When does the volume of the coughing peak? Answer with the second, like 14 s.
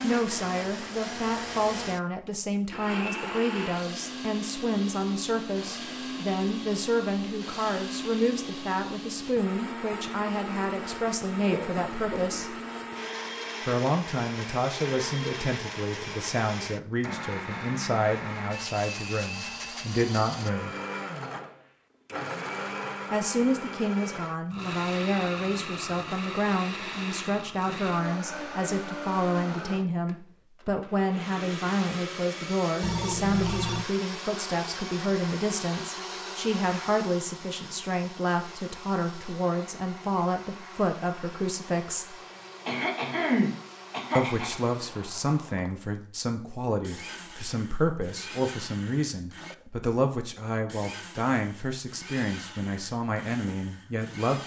43 s.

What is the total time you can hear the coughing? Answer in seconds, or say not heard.
3 s.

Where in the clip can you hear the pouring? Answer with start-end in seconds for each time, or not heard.
not heard.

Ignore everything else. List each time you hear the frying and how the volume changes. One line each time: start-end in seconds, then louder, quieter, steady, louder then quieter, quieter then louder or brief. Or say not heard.
not heard.